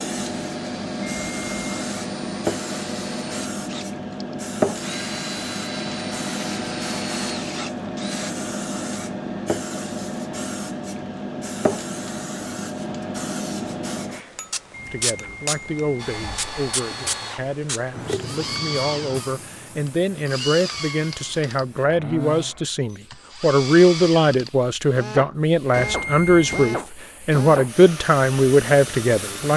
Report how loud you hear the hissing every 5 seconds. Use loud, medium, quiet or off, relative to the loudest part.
loud, loud, loud, medium, quiet, quiet.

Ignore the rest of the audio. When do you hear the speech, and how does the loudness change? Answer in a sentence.
You can hear the speech from 14.8 to 29.5 s, getting louder.